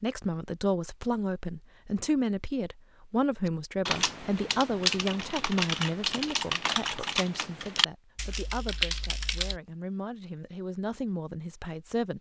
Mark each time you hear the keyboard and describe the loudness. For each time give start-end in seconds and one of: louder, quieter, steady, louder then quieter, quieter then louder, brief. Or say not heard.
3.5-9.6 steady.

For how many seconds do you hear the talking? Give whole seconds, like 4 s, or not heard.
12 s.